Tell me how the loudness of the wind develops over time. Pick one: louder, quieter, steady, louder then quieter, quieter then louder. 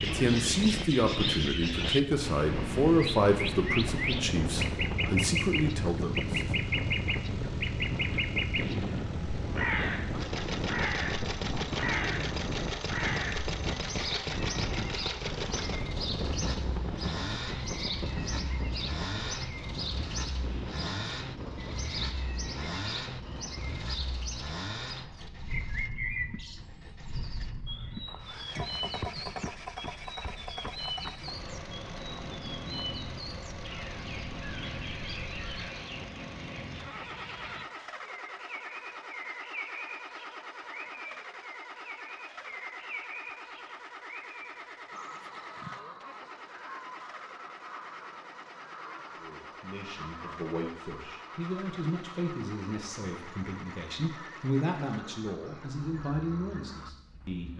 quieter.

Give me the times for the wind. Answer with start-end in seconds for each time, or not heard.
0.0-35.6.